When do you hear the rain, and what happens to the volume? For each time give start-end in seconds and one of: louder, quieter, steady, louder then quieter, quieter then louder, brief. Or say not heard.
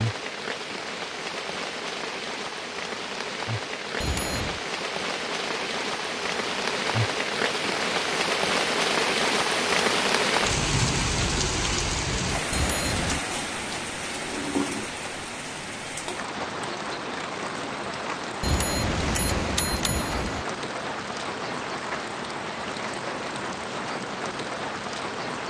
0.0-25.4 louder then quieter.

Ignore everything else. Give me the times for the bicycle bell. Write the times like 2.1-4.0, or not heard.
4.0-4.7, 12.5-13.2, 18.4-20.4.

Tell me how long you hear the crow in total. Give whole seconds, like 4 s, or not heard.
not heard.